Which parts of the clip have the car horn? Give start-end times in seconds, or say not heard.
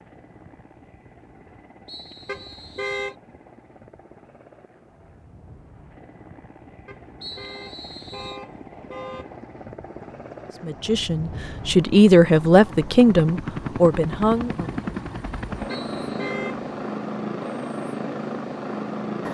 2.2-3.1, 6.8-9.4, 15.7-16.7.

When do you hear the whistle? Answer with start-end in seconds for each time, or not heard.
1.9-3.1, 7.2-8.4, 15.7-16.3.